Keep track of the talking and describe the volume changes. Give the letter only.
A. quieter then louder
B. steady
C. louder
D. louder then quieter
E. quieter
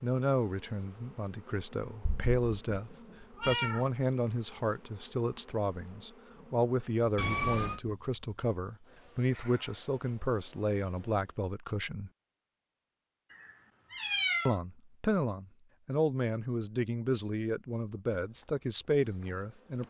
B.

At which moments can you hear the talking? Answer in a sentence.
You can hear the talking from 0.0 to 12.1 s and from 14.4 to 19.8 s.